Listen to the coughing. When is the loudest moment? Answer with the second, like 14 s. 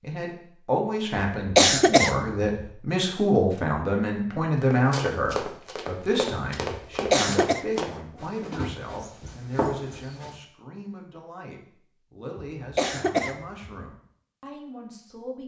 2 s.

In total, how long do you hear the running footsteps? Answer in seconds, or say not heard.
6 s.